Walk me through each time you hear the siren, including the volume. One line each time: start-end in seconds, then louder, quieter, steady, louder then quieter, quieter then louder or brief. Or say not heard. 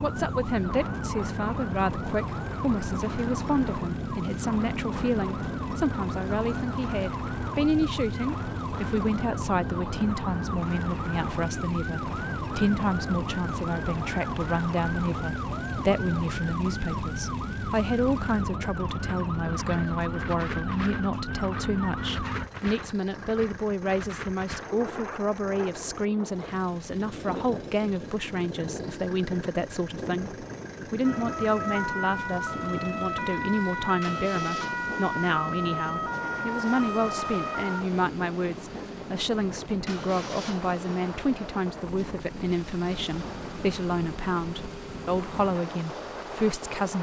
0.0-22.5 steady
31.0-37.9 steady.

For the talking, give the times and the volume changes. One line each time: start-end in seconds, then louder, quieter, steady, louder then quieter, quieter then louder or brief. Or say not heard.
0.0-46.9 steady.